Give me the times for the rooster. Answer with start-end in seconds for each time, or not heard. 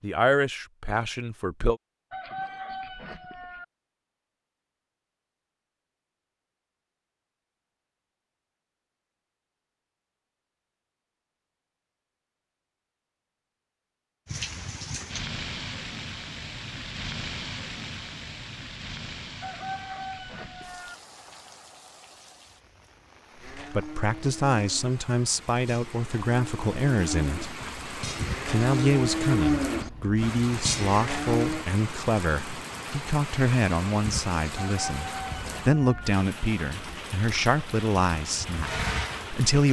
2.1-3.6, 19.4-20.9, 34.6-36.1.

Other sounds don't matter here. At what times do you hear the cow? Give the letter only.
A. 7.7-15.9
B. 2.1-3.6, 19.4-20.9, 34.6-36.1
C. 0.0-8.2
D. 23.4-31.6
D.